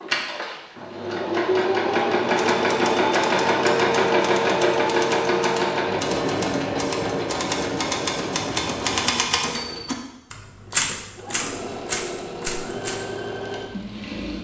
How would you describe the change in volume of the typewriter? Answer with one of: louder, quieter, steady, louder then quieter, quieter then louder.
louder.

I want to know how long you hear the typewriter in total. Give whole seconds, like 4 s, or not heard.
11 s.